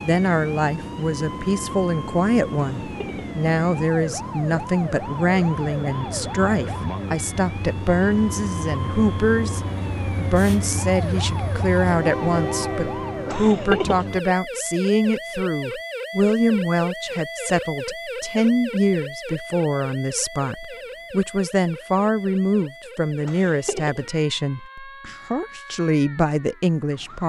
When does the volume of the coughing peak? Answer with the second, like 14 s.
14 s.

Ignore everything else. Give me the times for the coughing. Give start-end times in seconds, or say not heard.
2.8-3.2, 13.2-14.1, 23.2-24.1.